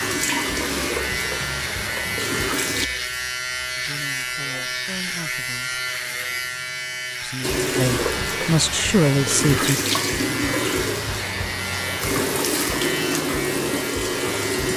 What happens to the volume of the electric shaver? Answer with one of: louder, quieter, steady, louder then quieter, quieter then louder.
steady.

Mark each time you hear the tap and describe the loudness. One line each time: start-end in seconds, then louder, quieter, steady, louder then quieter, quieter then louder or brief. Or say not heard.
0.0-2.9 brief
7.4-14.7 steady.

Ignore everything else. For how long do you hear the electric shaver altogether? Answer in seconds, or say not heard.
15 s.